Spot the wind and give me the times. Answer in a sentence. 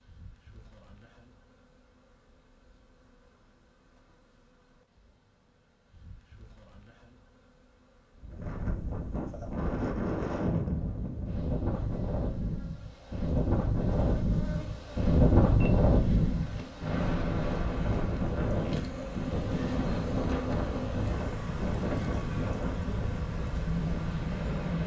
The wind can be heard from 8.2 to 24.8 s.